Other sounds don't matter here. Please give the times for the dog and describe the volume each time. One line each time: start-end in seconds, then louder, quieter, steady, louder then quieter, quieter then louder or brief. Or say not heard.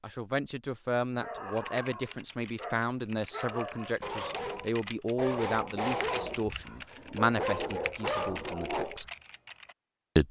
1.2-9.1 louder.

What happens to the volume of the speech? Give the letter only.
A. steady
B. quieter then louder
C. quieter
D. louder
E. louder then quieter
A.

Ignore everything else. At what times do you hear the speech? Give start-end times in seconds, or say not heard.
0.0-9.1.